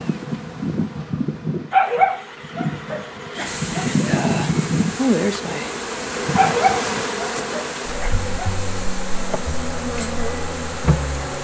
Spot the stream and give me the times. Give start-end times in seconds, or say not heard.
3.5-11.3.